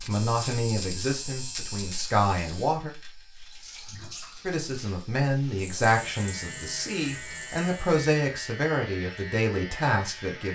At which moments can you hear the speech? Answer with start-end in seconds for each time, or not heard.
0.1-2.9, 4.4-10.4.